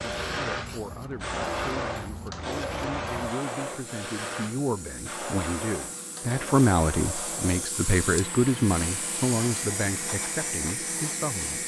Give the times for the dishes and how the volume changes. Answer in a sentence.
You can't hear the dishes here.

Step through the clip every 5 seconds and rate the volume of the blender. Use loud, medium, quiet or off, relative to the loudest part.
loud, medium, medium.